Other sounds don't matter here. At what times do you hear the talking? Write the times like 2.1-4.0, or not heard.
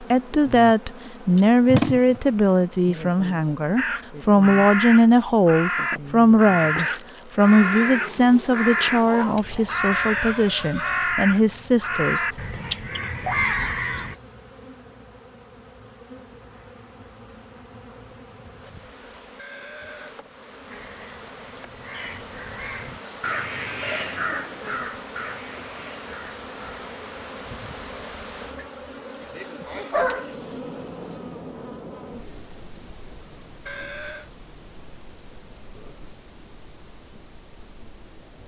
0.0-12.2.